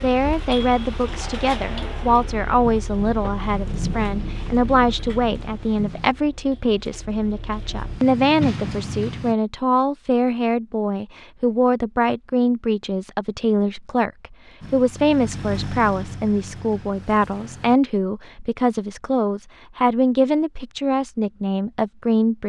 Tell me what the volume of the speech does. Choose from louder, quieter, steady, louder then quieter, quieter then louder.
steady.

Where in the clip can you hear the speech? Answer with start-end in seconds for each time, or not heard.
0.0-22.4.